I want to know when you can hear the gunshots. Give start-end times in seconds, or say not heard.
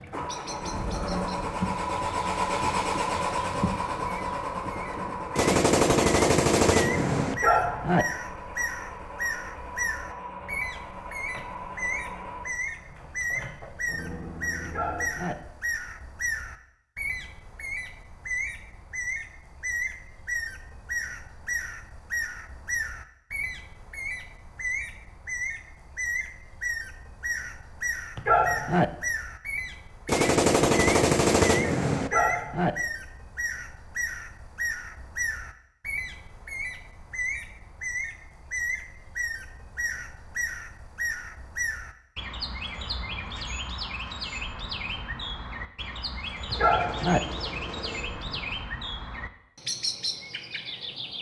5.3-7.3, 30.1-32.1, 46.5-48.5.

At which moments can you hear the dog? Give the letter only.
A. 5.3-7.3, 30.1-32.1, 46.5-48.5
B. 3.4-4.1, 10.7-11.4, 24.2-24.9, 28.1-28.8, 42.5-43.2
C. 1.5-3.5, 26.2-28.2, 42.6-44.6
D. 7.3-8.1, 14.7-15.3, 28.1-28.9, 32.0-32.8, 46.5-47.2
D.